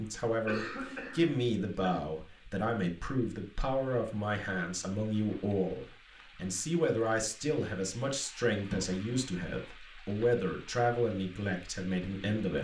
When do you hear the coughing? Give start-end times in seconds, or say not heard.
0.5-2.0, 8.7-9.2.